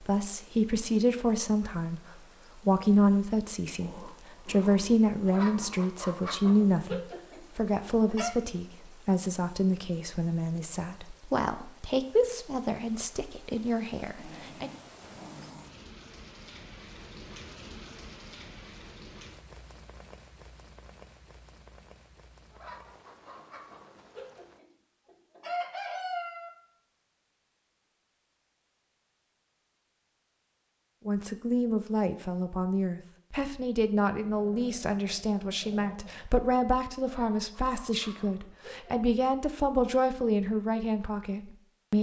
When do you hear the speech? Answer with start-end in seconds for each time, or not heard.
0.1-14.7, 31.1-41.9.